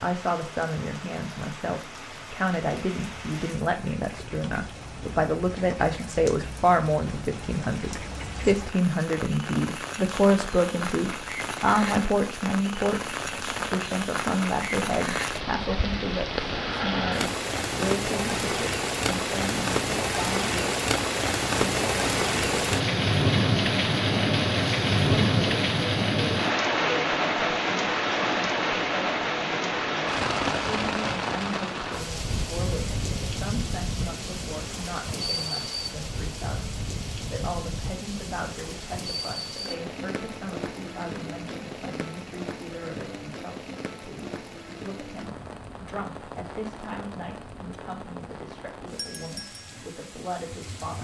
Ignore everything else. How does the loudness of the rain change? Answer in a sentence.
The loudness of the rain goes up, then down.